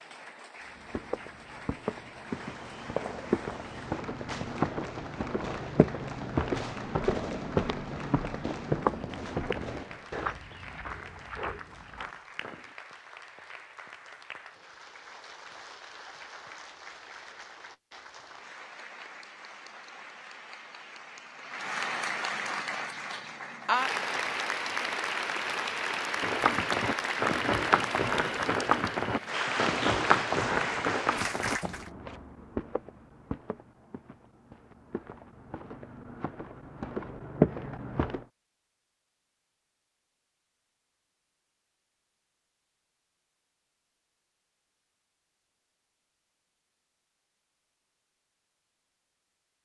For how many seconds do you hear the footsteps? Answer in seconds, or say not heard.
24 s.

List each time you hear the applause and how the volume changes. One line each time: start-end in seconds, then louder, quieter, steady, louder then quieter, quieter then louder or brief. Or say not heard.
0.0-31.9 louder.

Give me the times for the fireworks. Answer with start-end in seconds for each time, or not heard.
2.2-10.4.